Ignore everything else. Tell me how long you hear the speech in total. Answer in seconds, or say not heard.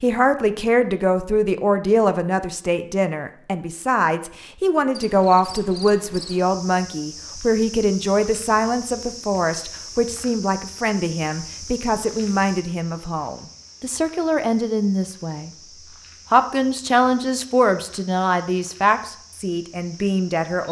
20 s.